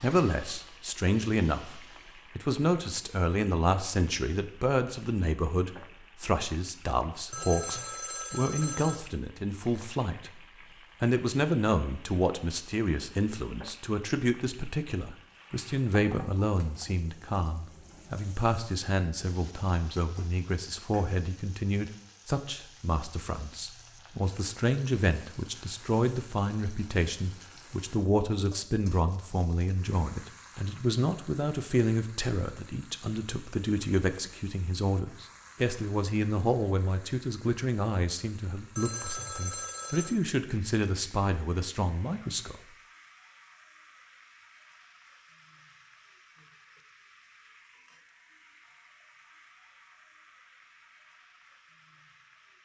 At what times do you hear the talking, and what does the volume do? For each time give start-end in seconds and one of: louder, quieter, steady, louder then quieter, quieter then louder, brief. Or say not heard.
0.0-10.3 steady
11.0-42.5 steady.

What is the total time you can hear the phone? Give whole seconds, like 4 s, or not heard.
3 s.